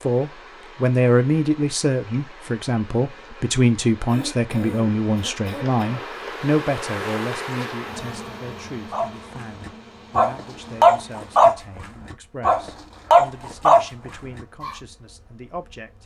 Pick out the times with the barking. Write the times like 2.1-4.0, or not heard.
8.9-14.8.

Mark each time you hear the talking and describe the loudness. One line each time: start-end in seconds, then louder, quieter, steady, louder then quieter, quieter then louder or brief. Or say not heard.
0.0-16.0 quieter.